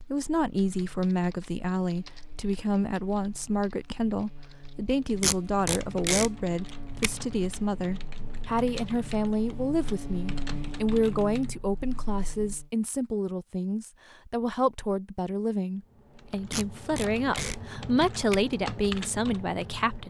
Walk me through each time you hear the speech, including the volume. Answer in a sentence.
The speech can be heard from 0.0 to 20.0 s, at a steady volume.